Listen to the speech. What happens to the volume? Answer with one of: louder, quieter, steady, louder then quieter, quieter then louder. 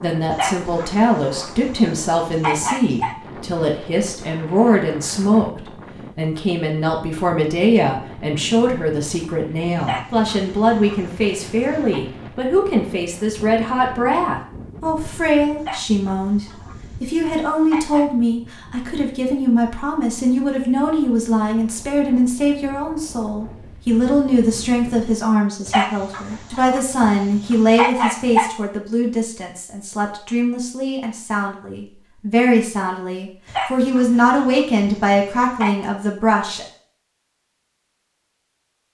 steady.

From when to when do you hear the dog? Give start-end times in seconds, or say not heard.
0.3-3.1, 9.8-12.0, 15.6-18.1, 25.6-28.5, 33.5-35.9.